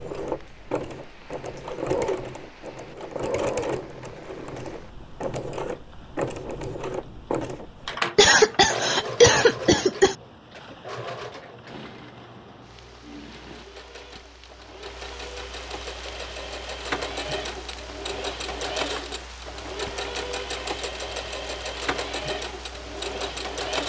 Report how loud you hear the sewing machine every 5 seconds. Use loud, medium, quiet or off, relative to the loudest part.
loud, loud, medium, loud, loud.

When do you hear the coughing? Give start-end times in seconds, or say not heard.
8.2-10.2.